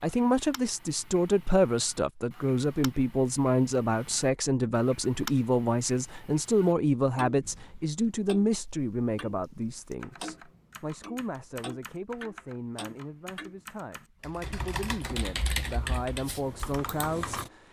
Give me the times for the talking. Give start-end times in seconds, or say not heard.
0.0-17.6.